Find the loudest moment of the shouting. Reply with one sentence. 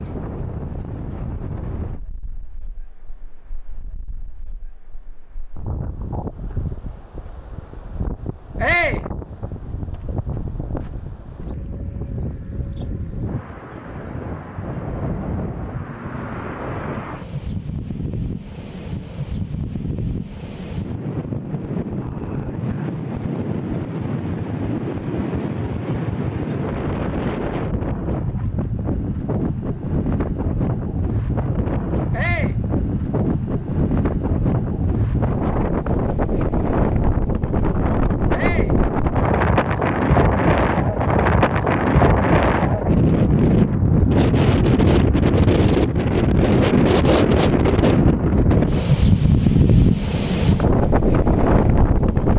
The loudest moment of the shouting is at 9 seconds.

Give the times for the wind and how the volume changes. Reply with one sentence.
The wind can be heard from 0.0 to 52.3 s, getting louder.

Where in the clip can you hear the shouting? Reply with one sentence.
The shouting can be heard from 8.6 to 9.1 s, from 32.1 to 32.6 s and from 38.3 to 38.8 s.